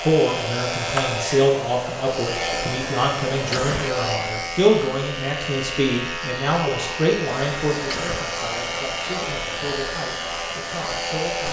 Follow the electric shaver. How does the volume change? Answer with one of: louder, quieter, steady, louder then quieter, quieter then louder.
steady.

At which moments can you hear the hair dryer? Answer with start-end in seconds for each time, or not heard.
0.0-4.0, 7.3-11.4.